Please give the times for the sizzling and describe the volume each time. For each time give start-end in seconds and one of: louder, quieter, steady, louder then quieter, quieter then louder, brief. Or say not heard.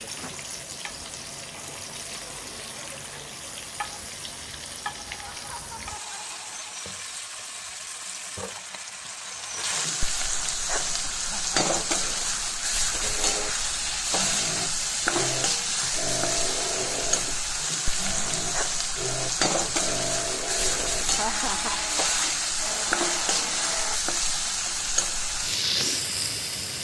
0.0-26.7 louder.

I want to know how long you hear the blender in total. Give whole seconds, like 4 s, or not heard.
11 s.